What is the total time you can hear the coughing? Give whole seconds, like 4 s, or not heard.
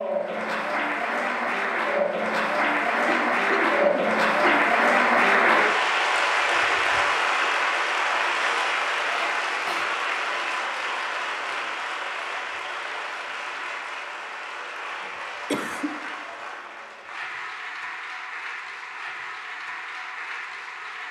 3 s.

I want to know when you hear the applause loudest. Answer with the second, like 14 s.
5 s.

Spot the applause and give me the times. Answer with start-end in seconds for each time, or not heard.
0.0-21.0.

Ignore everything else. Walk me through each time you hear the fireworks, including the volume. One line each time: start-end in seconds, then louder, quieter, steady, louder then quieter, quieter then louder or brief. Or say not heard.
not heard.